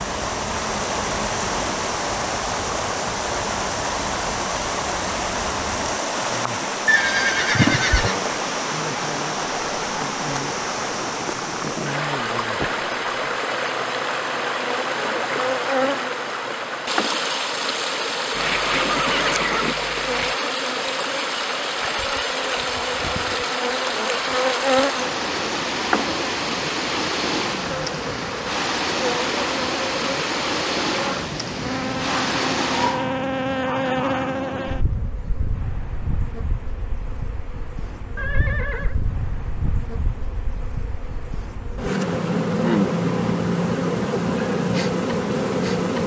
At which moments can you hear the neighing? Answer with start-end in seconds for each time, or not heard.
6.8-8.2, 18.3-20.4, 38.1-39.0.